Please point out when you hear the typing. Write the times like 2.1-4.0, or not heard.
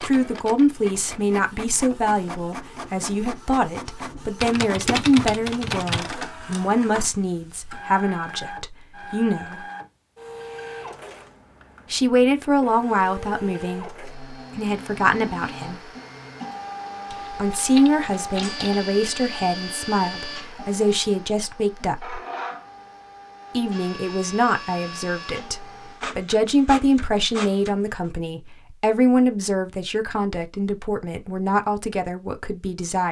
4.4-6.2, 17.1-18.9.